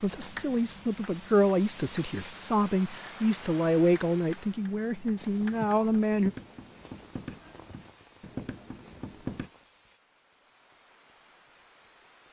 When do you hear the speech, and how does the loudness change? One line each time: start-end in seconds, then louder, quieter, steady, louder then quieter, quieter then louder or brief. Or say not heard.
0.0-6.3 steady.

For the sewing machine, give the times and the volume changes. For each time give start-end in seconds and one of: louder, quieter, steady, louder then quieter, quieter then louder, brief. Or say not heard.
not heard.